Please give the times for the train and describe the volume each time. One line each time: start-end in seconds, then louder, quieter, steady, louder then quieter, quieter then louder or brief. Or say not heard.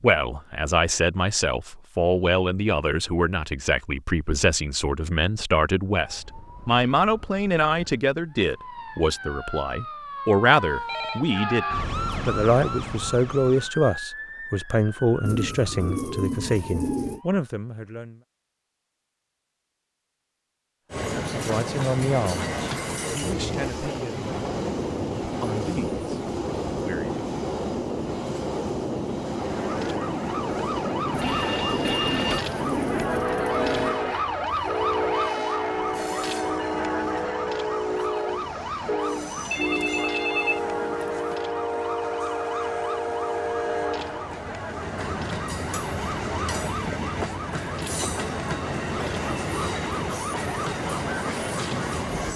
20.9-52.3 steady.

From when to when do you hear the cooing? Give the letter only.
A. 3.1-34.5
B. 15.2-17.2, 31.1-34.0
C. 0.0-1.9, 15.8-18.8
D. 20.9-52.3
B.